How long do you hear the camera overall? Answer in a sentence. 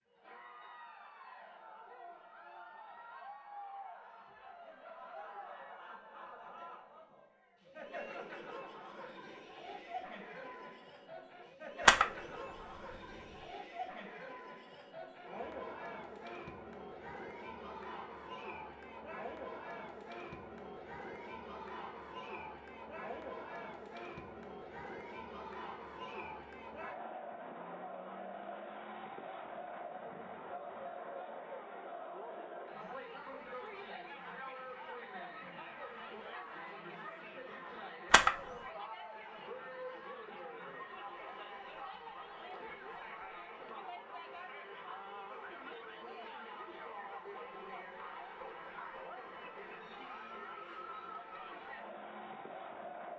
The camera can be heard for 2 seconds in total.